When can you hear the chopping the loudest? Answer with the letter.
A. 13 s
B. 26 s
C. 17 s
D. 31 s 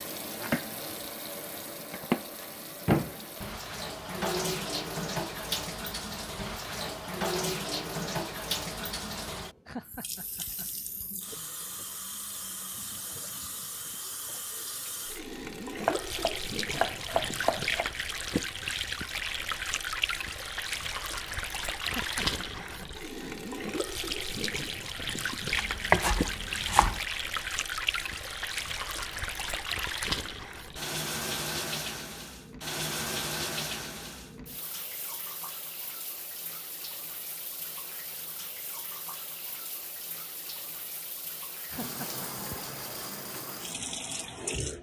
B.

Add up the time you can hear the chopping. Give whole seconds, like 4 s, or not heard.
4 s.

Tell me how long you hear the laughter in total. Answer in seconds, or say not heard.
3 s.